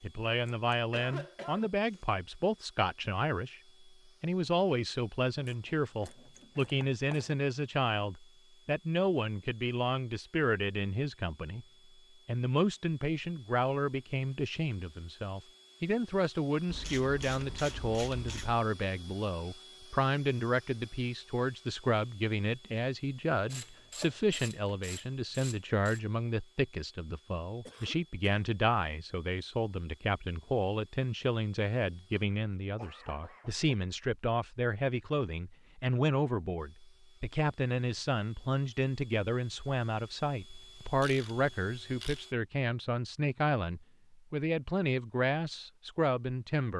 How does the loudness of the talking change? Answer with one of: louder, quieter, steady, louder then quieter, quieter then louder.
steady.